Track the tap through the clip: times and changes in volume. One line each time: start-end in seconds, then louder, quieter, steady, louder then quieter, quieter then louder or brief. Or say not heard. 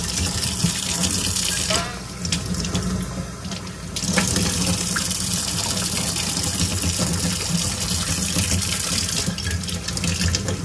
0.0-10.6 steady.